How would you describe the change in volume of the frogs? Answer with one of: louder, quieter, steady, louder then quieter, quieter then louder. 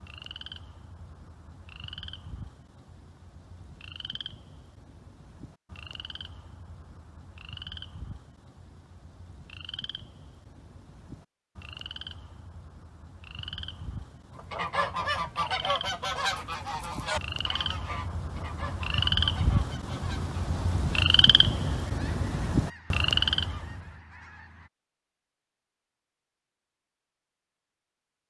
louder.